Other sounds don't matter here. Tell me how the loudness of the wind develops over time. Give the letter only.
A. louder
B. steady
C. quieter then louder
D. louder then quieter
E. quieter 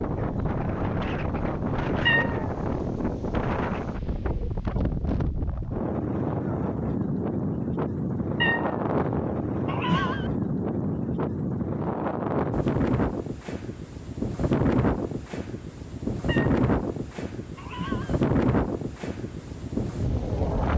B.